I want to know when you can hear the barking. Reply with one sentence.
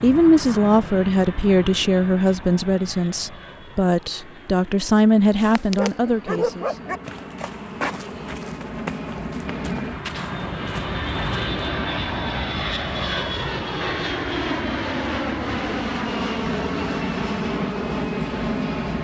The barking can be heard from 5.8 to 7.0 s.